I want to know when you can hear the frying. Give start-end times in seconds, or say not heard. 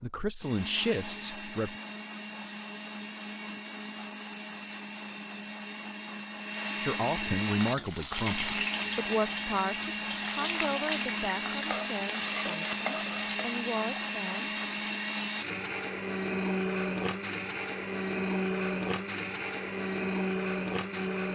7.5-15.6.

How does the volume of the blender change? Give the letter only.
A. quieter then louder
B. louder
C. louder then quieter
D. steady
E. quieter
B.